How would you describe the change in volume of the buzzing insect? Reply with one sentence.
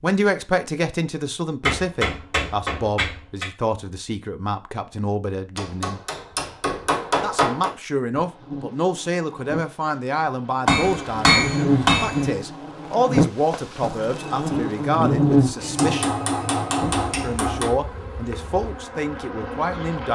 The loudness of the buzzing insect goes up, then down.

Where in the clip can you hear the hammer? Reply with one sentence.
The hammer can be heard from 1.6 to 3.5 s, from 5.5 to 7.7 s, from 10.7 to 12.3 s and from 15.6 to 17.8 s.